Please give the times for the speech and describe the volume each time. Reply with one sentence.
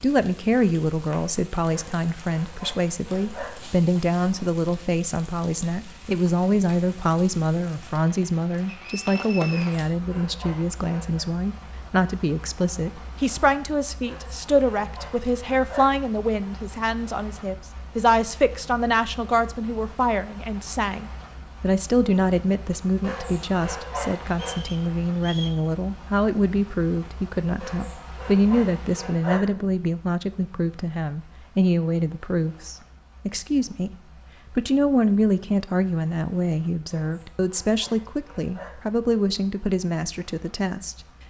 The speech can be heard from 0.0 to 33.9 s, at a steady volume; and from 34.5 to 41.0 s, getting quieter.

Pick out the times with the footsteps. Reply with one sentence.
You can't hear the footsteps here.